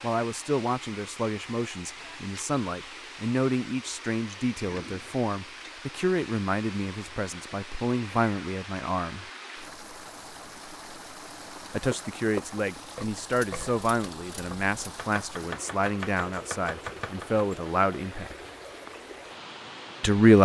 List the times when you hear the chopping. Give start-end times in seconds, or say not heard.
11.9-17.4.